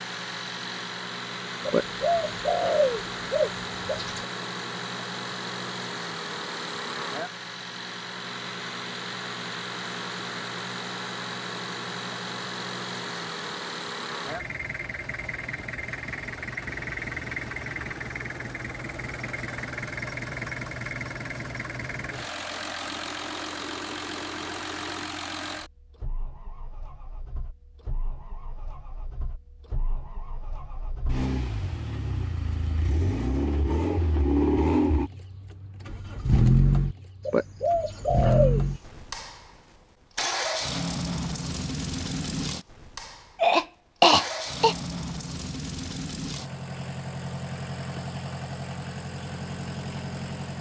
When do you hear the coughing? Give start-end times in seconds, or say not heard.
43.4-44.8.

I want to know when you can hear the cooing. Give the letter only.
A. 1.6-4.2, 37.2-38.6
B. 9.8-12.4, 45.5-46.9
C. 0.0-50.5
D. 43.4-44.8
A.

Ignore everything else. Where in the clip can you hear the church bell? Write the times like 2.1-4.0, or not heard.
not heard.